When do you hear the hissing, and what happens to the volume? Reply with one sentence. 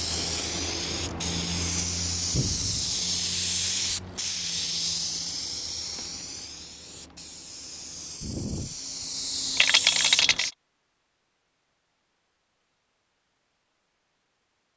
You can hear the hissing from 0.0 to 10.6 s, getting quieter then louder.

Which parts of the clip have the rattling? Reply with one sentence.
You can hear the rattling from 9.6 to 10.5 s.